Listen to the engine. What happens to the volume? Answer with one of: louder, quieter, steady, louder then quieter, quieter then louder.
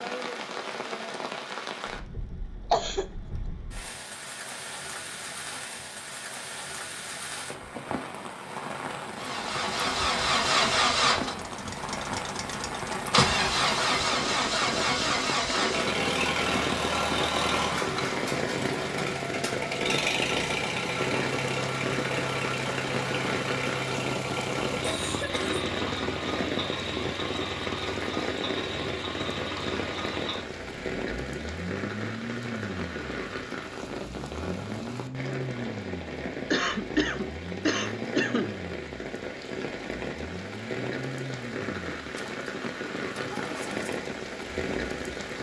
quieter.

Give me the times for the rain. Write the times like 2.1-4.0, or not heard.
0.0-45.3.